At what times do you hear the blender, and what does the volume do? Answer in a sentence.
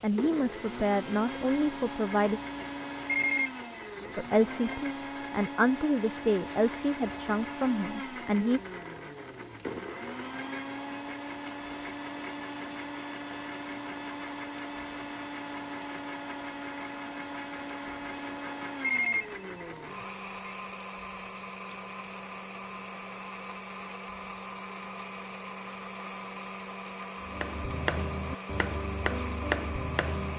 The blender can be heard from 0.0 to 30.3 s, at a steady volume.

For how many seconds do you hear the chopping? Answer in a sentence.
You can hear the chopping for 3 seconds altogether.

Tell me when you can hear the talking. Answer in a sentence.
The talking can be heard from 0.0 to 2.4 s and from 4.2 to 8.6 s.